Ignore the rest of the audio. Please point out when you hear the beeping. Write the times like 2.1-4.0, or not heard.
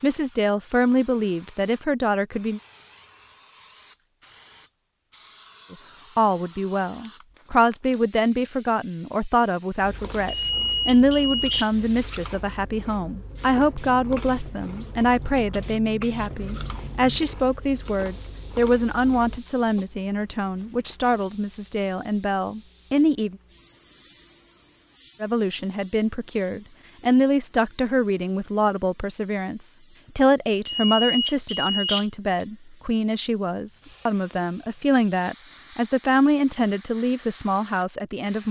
10.2-11.7, 30.6-32.5.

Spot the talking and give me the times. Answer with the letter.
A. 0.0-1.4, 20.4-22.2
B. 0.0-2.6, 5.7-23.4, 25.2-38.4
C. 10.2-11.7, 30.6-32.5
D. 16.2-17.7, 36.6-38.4
B.